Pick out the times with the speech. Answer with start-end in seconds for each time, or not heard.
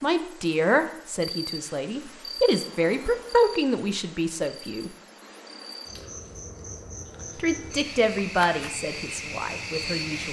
0.0-4.9, 7.3-10.2.